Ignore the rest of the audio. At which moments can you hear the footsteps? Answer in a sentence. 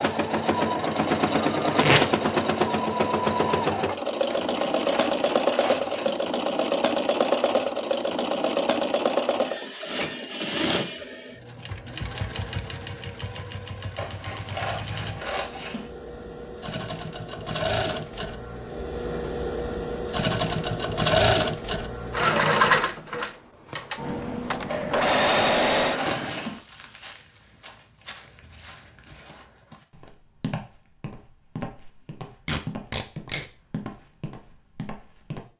You can hear the footsteps from 26.1 to 35.5 s.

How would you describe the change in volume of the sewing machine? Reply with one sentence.
The volume of the sewing machine goes down, then up.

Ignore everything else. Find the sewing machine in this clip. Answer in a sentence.
The sewing machine can be heard from 0.0 to 26.5 s.